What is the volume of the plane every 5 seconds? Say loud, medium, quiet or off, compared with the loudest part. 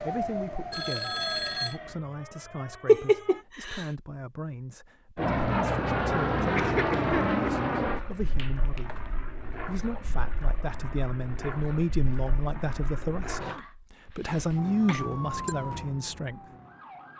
off, loud, quiet, off.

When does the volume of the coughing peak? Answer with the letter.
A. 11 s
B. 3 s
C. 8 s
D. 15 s
B.